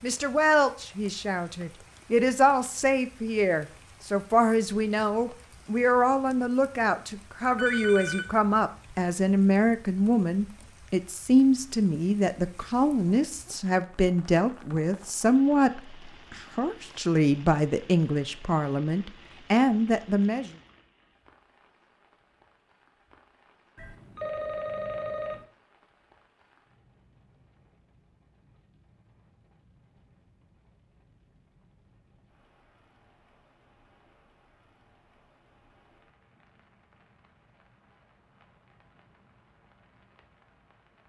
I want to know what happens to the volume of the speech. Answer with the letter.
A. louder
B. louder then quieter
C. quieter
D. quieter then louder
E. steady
E.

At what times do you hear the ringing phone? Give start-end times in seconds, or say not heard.
7.5-8.2, 23.8-25.4.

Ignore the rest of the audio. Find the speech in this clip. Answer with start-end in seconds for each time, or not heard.
0.0-20.5.